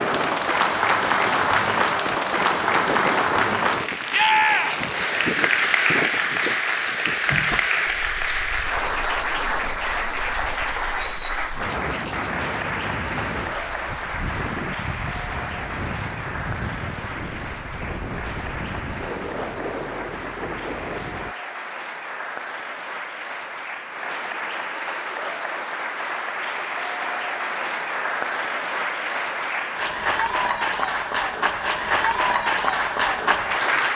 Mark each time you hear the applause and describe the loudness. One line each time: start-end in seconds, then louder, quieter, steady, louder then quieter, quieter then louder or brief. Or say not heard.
0.0-33.9 quieter then louder.